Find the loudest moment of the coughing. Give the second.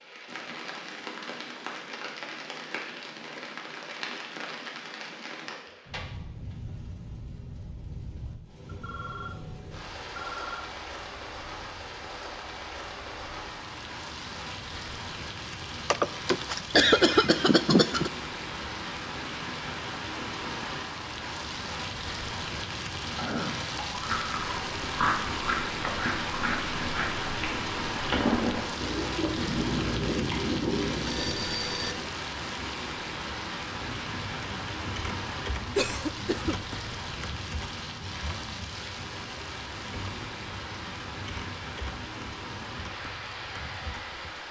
17 s.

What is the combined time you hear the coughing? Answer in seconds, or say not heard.
3 s.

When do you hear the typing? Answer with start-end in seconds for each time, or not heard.
33.9-44.4.